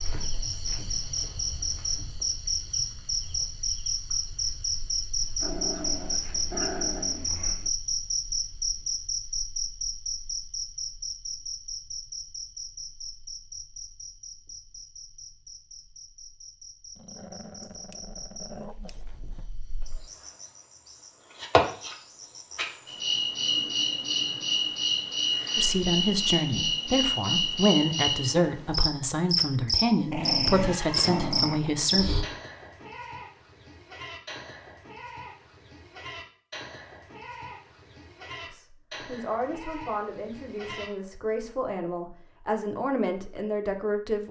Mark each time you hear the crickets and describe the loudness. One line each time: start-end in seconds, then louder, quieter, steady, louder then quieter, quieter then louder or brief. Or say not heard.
0.0-32.2 quieter then louder.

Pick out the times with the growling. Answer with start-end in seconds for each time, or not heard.
5.4-7.7, 16.9-19.5, 30.1-32.0.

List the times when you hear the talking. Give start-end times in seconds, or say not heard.
25.6-32.1, 38.5-44.2.